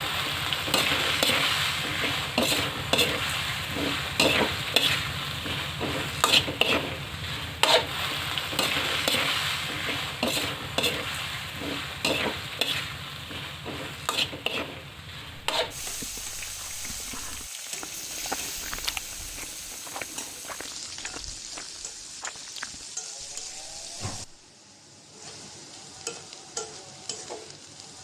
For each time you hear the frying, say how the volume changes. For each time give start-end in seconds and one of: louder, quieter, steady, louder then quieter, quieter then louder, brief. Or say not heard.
0.0-27.9 quieter.